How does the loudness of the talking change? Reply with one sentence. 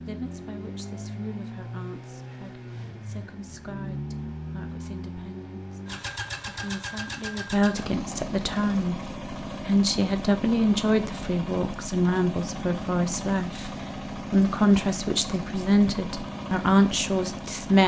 The volume of the talking goes up.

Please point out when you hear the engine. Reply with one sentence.
The engine can be heard from 0.0 to 17.8 s.